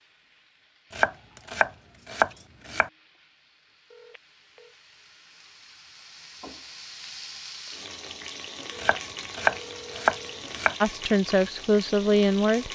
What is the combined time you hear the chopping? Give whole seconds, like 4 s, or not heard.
4 s.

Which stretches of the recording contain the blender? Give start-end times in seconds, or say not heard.
not heard.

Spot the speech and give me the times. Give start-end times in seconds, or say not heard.
10.8-12.6.